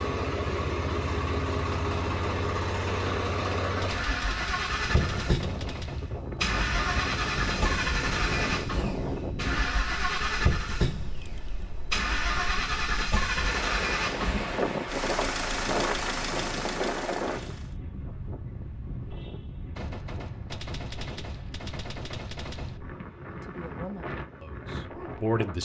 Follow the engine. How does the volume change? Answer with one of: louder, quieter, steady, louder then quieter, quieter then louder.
steady.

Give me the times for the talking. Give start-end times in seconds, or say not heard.
23.4-25.6.